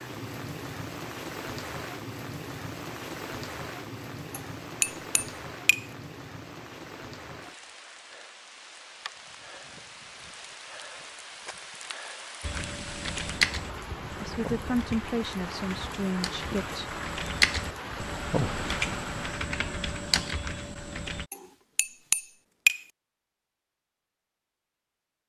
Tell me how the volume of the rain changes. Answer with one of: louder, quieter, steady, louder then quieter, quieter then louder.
quieter then louder.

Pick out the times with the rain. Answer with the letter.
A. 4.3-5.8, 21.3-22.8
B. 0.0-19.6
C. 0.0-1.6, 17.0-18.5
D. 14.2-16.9
B.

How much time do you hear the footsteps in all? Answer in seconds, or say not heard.
not heard.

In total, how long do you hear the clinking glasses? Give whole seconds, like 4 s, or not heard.
3 s.